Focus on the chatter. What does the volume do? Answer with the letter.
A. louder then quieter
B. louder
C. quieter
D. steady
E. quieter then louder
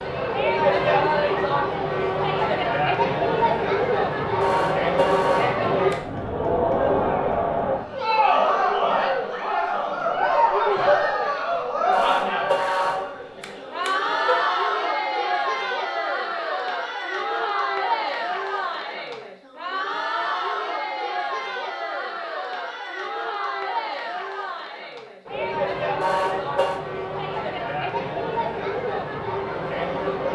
C.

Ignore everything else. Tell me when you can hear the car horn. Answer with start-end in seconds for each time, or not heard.
4.4-6.1, 11.9-14.4, 26.0-26.8.